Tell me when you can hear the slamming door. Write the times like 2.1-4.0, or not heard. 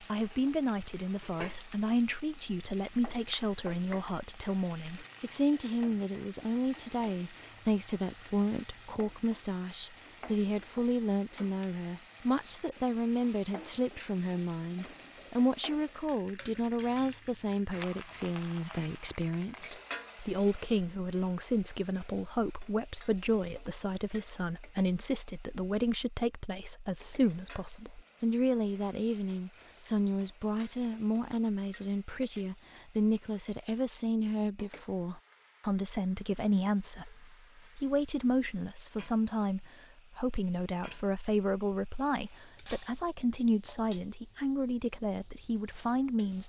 not heard.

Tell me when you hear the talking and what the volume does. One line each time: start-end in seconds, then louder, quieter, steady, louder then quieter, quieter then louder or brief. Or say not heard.
0.0-46.4 steady.